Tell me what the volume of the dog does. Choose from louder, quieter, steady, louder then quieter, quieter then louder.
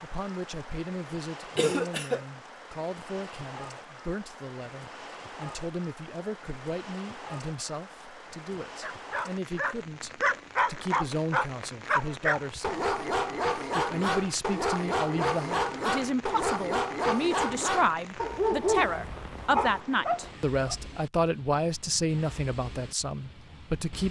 steady.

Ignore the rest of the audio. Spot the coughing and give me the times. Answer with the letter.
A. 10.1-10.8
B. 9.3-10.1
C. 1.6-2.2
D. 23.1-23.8
C.